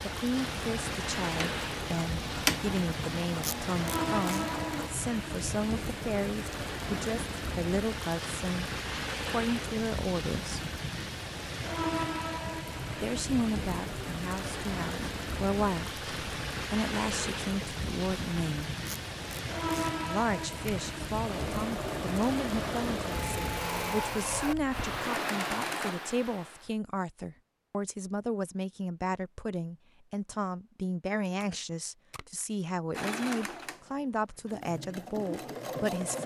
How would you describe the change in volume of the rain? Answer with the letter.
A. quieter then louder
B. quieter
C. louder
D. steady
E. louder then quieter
D.